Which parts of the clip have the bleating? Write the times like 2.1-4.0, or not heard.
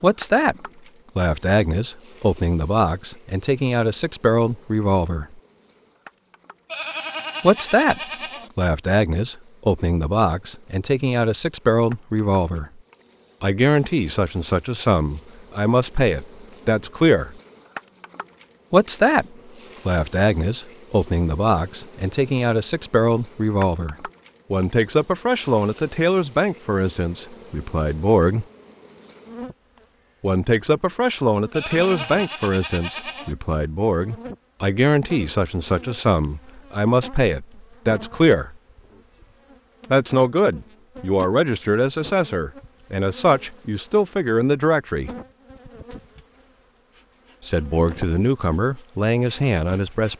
6.7-8.5, 31.5-33.4.